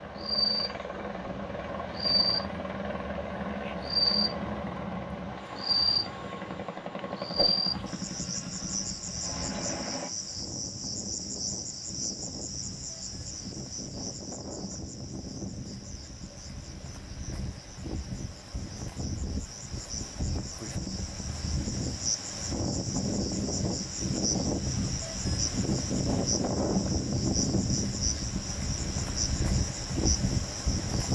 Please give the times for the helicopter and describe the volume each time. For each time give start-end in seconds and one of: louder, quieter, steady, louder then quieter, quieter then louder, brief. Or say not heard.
0.0-10.1 steady.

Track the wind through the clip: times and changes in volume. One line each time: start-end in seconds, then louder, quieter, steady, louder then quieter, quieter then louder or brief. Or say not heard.
0.0-31.1 louder.